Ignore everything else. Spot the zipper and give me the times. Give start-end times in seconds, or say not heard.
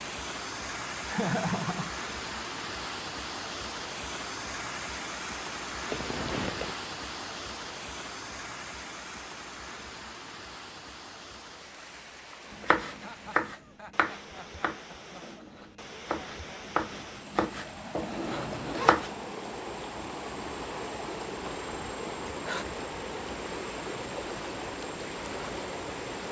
5.9-6.8, 18.2-18.9.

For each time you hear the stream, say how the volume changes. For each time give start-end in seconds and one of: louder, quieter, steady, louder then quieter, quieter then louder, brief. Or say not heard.
0.0-26.2 quieter then louder.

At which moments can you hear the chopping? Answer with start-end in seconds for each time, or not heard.
12.6-19.2.